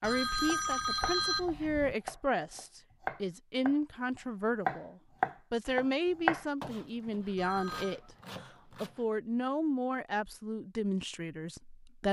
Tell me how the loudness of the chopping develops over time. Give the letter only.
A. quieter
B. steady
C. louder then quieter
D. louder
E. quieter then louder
C.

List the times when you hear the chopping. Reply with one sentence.
The chopping can be heard from 0.5 to 9.0 s.